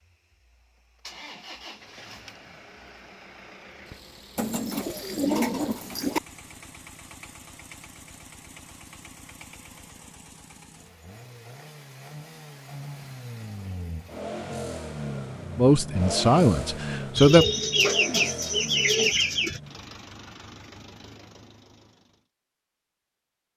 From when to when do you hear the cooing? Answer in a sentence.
The cooing can be heard from 4.3 to 6.2 s and from 17.1 to 19.6 s.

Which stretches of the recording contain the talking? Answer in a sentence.
The talking can be heard from 15.6 to 17.4 s.